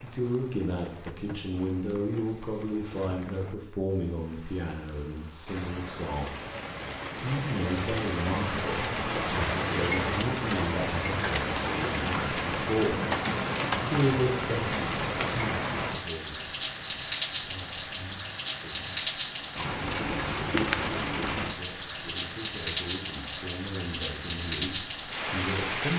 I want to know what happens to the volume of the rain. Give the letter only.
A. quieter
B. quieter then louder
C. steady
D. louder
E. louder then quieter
D.